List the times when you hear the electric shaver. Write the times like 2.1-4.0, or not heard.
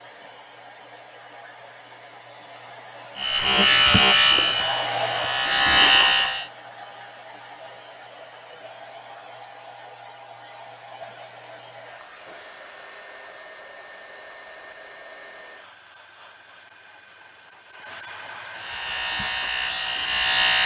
3.1-6.5, 18.5-20.6.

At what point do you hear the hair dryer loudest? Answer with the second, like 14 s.
5 s.